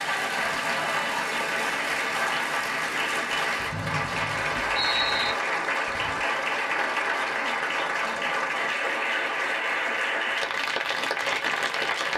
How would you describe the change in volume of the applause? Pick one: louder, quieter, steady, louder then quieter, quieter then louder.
steady.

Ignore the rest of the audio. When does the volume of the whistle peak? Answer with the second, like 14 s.
5 s.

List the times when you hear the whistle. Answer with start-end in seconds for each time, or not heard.
3.7-5.3.